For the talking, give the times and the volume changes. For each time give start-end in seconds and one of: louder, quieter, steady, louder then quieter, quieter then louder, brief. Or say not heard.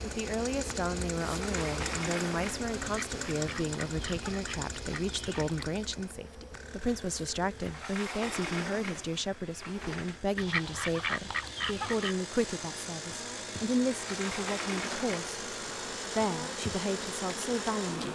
0.0-15.3 steady
16.1-18.1 brief.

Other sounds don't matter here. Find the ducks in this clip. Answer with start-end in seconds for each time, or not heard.
2.8-5.7, 10.3-12.2.